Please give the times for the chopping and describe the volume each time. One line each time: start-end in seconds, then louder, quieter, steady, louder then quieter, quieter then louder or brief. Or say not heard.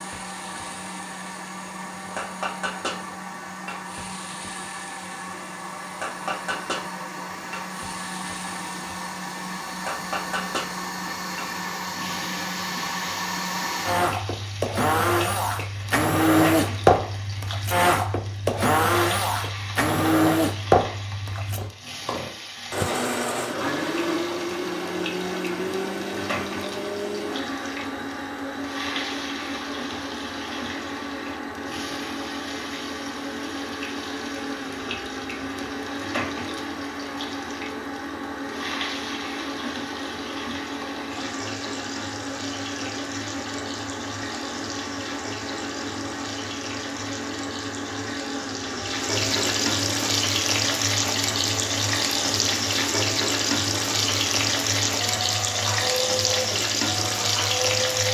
not heard.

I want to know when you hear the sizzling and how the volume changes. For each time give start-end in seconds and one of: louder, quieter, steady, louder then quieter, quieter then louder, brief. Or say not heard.
0.0-58.1 louder.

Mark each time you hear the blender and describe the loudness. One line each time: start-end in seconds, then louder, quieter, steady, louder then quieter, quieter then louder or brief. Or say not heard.
0.0-58.1 louder then quieter.